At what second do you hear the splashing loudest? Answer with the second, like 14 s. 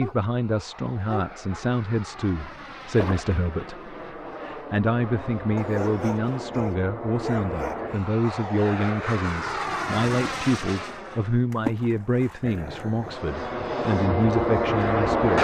12 s.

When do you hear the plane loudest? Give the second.
15 s.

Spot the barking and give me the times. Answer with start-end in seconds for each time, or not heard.
0.0-1.7, 5.5-8.0, 12.4-13.2.